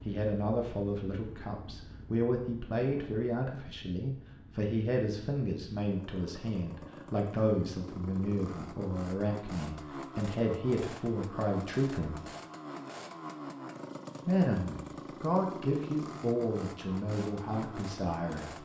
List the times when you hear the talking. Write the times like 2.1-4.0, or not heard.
0.1-12.2, 14.2-18.6.